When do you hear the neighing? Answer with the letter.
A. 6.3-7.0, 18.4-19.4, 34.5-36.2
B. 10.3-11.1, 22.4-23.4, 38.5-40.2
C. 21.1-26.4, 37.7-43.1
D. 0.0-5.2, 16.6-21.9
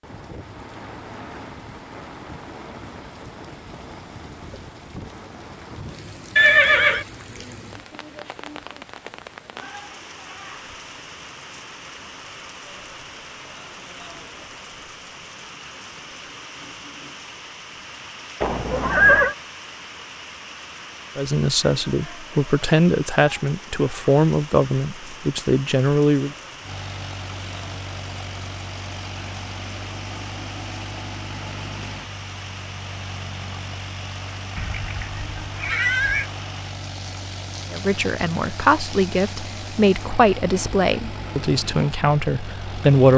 A.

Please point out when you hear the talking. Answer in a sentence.
You can hear the talking from 21.1 to 26.4 s and from 37.7 to 43.1 s.